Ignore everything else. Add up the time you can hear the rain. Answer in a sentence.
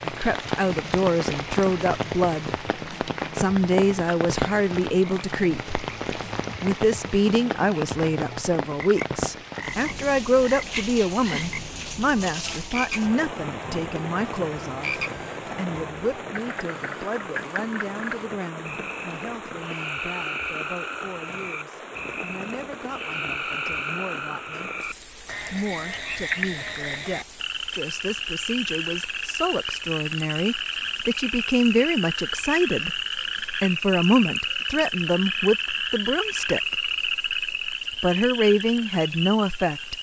You can hear the rain for 40 seconds altogether.